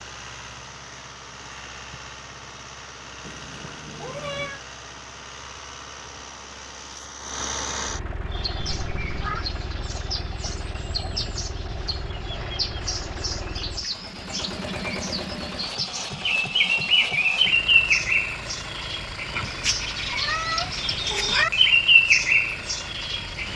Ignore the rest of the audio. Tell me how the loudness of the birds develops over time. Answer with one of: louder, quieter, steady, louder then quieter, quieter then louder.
louder.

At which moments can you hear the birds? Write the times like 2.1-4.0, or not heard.
8.3-23.5.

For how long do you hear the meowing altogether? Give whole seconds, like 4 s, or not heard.
4 s.